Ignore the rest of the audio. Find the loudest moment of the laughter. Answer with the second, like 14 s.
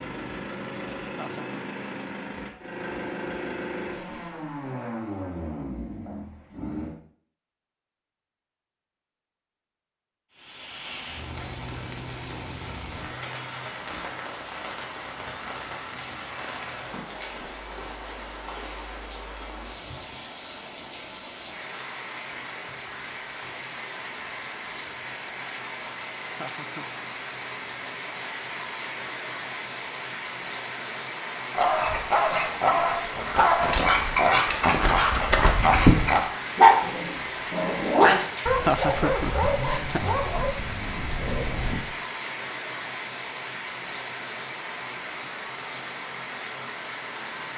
39 s.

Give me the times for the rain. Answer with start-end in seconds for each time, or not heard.
10.3-47.5.